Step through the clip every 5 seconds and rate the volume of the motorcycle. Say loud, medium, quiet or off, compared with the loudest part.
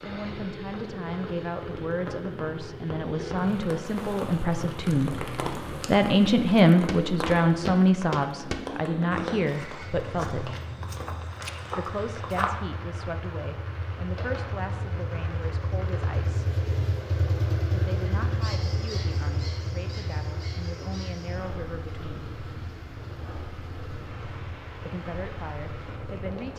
medium, medium, medium, loud, medium, medium.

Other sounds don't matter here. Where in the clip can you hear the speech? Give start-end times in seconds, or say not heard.
0.0-10.6, 11.8-16.6, 17.7-22.3, 24.9-26.5.